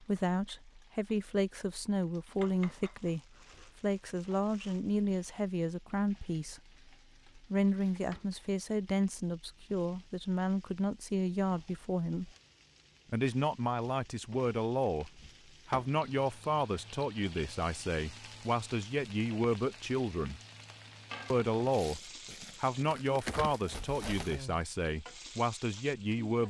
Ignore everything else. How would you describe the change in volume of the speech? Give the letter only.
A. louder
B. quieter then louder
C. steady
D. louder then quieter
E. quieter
C.